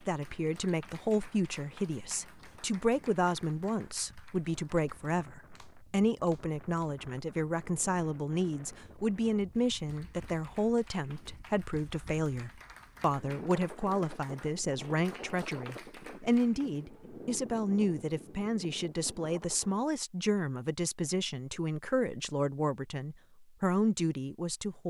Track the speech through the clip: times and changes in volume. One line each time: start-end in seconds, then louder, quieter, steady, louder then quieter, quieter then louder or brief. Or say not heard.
0.0-24.8 steady.